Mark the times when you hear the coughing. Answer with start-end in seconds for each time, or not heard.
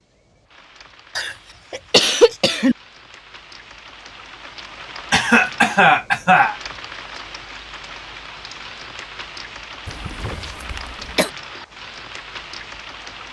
1.1-2.8, 5.1-6.5, 9.8-11.3.